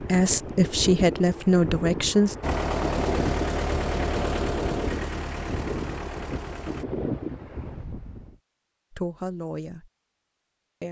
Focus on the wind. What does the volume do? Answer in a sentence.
The loudness of the wind stays about the same.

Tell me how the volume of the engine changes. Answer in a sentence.
The volume of the engine goes down.